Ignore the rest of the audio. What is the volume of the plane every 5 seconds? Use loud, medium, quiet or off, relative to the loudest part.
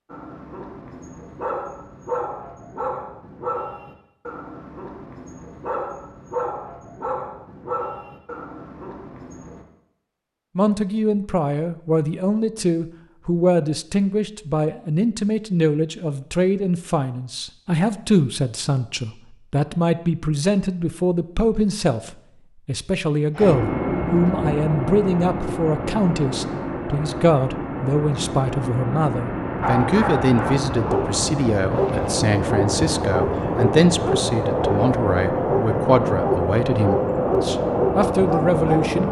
off, off, off, off, loud, medium, loud, loud.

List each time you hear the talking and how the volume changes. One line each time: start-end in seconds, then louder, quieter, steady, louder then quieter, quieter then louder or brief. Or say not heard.
10.6-39.0 steady.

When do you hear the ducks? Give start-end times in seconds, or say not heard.
not heard.